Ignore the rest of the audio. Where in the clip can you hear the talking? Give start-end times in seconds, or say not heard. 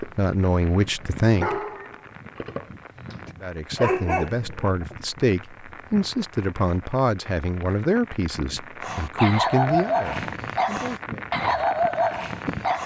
0.0-1.6, 3.4-11.3.